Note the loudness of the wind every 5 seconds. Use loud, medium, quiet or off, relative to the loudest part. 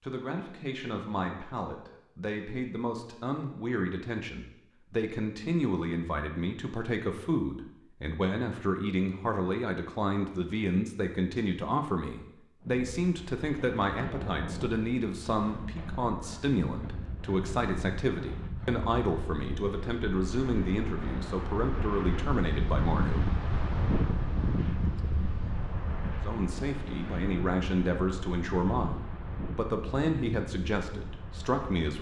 off, off, medium, medium, loud, medium, medium.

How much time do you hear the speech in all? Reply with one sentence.
The speech can be heard for 29 seconds in total.